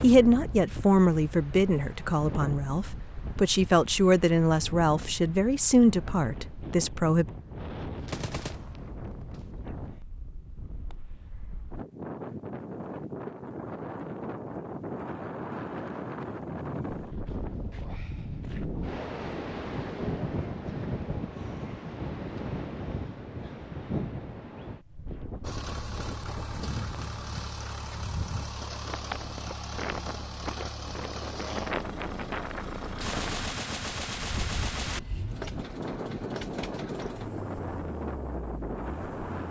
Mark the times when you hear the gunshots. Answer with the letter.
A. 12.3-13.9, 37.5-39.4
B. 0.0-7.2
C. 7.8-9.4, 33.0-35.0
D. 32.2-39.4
C.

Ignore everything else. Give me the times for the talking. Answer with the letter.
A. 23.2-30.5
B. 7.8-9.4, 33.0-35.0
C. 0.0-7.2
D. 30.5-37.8
C.